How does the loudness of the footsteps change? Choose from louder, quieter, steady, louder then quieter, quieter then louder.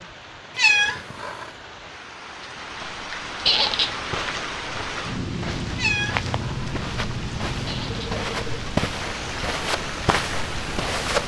louder.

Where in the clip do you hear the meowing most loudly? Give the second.
1 s.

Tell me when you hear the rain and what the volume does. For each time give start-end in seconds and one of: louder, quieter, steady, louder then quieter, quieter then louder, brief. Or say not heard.
0.0-11.2 louder.